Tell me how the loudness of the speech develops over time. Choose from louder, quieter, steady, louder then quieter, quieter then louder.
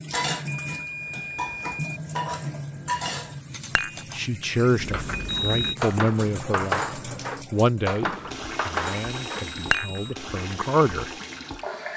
quieter then louder.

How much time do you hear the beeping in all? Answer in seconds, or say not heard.
3 s.